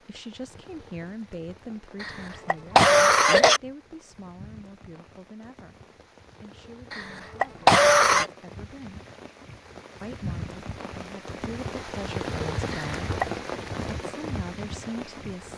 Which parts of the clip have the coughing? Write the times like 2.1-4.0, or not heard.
2.0-3.6, 6.9-8.3, 12.7-13.2.